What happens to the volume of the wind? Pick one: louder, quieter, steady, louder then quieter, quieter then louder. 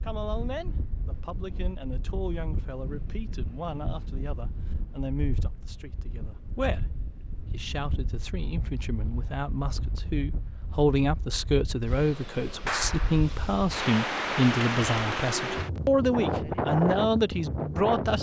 louder.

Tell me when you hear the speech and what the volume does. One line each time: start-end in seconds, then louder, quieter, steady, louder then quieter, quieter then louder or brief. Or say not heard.
0.0-18.1 louder.